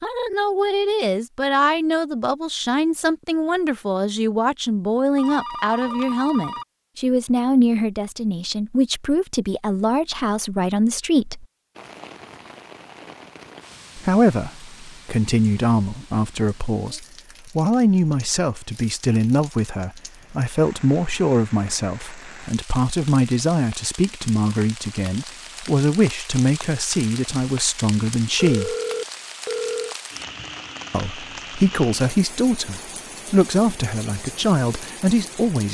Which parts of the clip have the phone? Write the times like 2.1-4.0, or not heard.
5.2-6.7, 28.4-29.9.